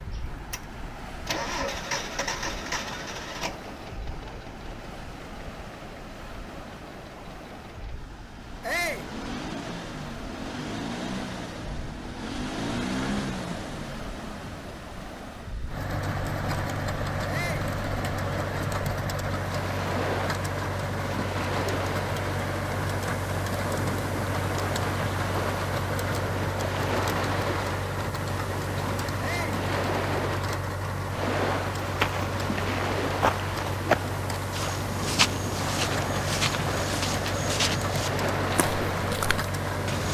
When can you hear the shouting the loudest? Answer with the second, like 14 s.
9 s.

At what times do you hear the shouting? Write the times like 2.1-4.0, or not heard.
8.6-9.1, 17.2-17.7, 29.1-29.6.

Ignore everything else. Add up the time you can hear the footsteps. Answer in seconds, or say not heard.
8 s.